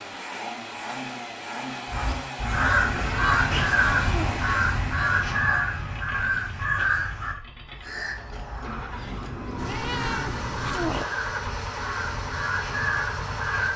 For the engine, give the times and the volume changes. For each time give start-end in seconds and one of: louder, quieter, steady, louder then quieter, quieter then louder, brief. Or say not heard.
0.0-13.7 quieter then louder.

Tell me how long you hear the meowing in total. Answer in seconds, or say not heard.
3 s.